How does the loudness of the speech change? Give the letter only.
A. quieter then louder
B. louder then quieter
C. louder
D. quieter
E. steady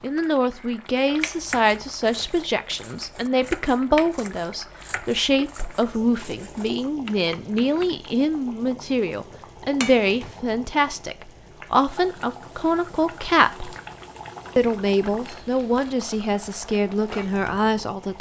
E.